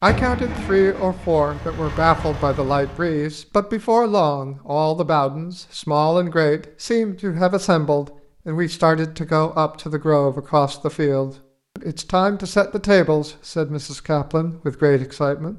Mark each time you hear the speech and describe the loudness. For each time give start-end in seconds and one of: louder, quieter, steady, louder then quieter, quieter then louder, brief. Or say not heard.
0.0-15.5 steady.